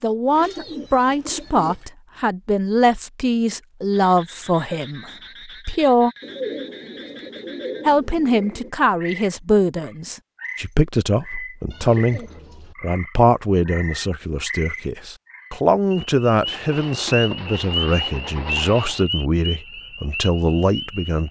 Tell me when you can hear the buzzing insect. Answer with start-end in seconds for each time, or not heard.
not heard.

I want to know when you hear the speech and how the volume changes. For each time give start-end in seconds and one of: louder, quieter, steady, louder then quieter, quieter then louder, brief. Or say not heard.
0.0-6.1 quieter
7.8-21.2 steady.